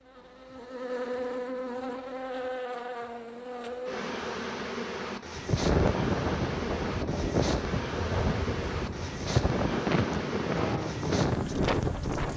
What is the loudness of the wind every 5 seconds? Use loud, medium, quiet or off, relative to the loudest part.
off, loud, loud.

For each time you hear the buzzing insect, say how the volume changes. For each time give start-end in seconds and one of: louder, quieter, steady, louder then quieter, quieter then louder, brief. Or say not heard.
0.0-12.3 steady.